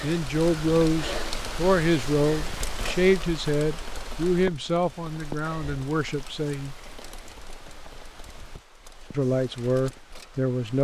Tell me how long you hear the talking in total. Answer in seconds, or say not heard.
8 s.